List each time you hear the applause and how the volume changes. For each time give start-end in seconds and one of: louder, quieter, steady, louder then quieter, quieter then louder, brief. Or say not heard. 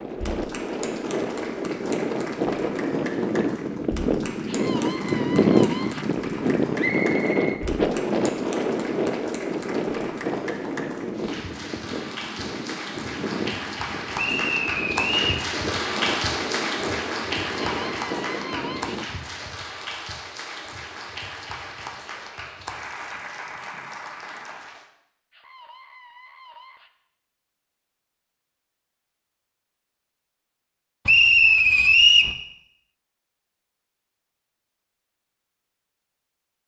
0.1-24.9 louder then quieter.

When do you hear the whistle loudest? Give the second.
32 s.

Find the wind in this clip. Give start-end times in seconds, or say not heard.
0.0-19.1.